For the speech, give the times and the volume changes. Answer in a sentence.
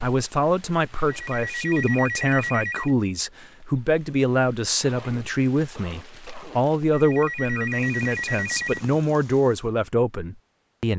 The speech can be heard from 0.0 to 10.9 s, at a steady volume.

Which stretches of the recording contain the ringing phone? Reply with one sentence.
You can hear the ringing phone from 1.1 to 3.0 s and from 6.9 to 8.8 s.